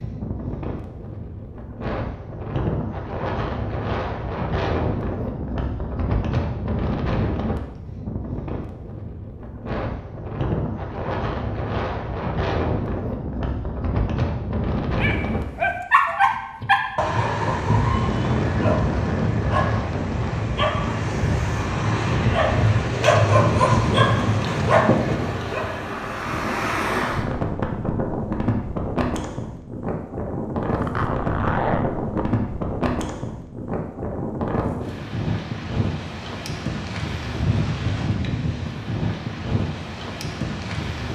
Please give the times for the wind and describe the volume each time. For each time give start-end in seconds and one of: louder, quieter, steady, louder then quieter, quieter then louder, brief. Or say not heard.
0.0-41.1 steady.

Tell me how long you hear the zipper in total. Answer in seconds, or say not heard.
2 s.